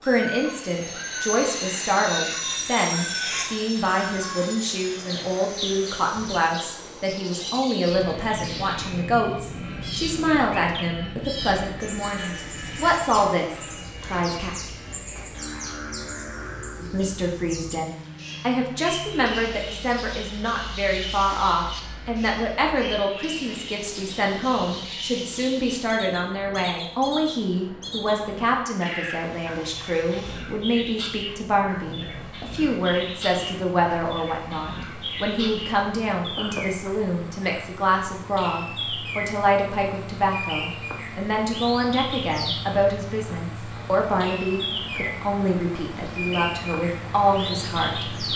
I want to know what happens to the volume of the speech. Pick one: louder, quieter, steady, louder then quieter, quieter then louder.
steady.